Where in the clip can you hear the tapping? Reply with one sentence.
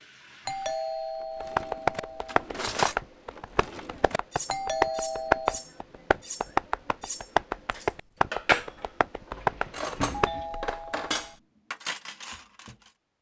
The tapping can be heard from 1.4 to 10.7 s.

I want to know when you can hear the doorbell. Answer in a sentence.
The doorbell can be heard from 0.5 to 2.5 s, from 4.5 to 5.6 s and from 10.1 to 11.3 s.